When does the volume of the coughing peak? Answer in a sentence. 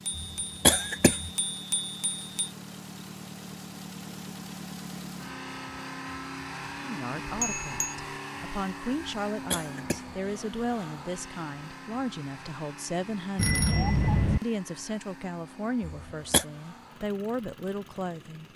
The volume of the coughing peaks at 1 second.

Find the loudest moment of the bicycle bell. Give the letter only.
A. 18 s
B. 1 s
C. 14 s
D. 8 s
C.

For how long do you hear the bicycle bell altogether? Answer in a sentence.
You can hear the bicycle bell for 4 seconds altogether.